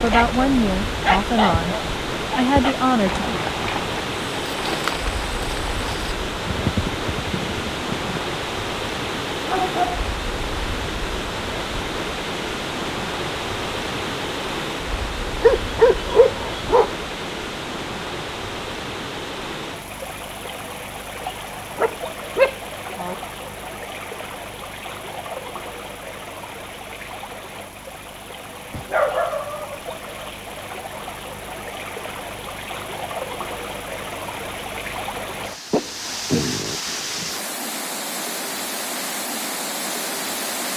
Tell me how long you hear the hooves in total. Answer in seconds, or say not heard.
5 s.